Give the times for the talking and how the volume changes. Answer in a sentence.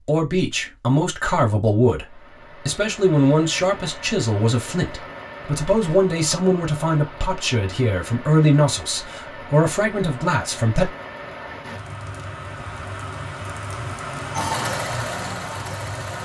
You can hear the talking from 0.1 to 10.9 s, at a steady volume.